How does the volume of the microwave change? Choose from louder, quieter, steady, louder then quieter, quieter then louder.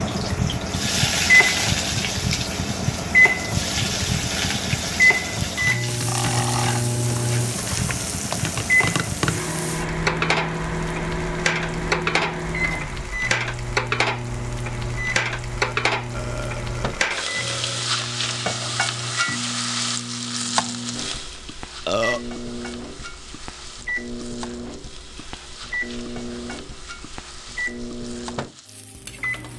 quieter.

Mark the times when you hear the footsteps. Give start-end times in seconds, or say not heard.
not heard.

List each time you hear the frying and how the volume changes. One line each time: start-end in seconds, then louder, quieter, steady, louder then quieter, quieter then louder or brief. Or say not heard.
0.0-29.5 quieter.